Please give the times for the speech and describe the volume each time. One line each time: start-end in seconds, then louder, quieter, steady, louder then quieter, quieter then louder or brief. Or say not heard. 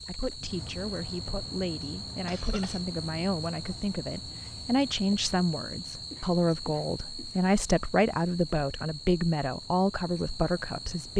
0.0-11.1 louder.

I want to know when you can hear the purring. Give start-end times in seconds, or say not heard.
not heard.